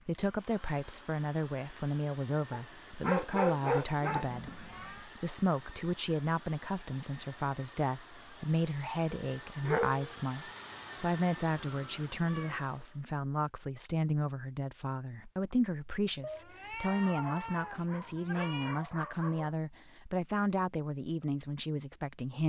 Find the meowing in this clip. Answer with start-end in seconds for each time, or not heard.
4.2-5.1, 11.8-12.6, 16.2-18.8.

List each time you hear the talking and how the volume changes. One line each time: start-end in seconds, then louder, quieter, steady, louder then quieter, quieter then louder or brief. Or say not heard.
0.1-22.4 steady.